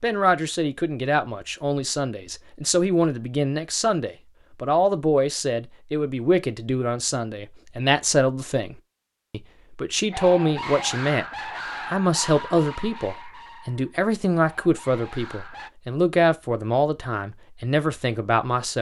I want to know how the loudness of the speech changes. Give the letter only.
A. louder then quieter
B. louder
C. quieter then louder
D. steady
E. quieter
D.